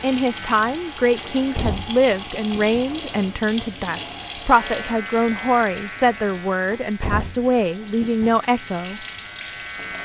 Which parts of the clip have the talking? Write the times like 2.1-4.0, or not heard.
0.0-9.1.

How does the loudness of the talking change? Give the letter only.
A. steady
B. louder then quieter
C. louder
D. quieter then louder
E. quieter
A.